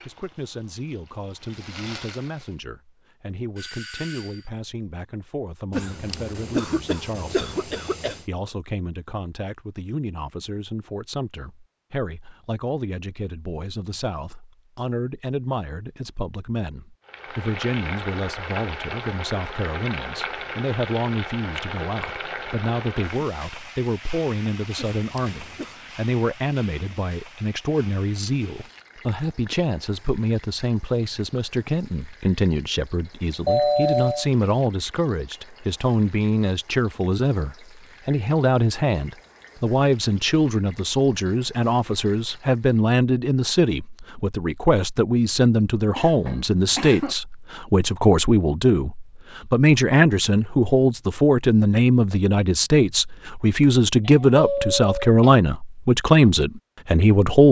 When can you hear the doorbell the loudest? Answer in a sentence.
The loudest moment of the doorbell is at 34 seconds.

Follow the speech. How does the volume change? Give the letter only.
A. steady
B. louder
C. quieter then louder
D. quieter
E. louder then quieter
B.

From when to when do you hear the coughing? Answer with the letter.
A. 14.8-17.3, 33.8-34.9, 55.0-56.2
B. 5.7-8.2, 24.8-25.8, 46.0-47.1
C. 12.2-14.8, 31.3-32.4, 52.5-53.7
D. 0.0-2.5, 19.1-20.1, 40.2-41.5
B.